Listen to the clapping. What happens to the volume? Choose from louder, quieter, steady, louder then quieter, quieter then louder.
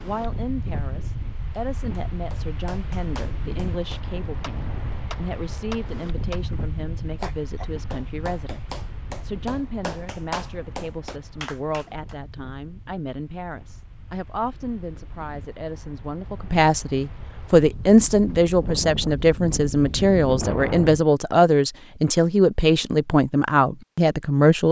louder.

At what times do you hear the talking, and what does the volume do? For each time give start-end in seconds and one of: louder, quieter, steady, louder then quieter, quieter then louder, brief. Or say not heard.
0.0-24.6 louder.